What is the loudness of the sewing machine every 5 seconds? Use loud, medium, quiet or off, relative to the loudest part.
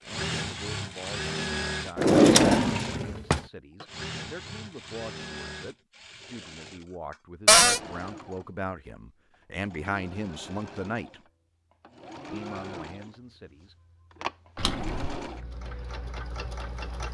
loud, medium, medium, medium.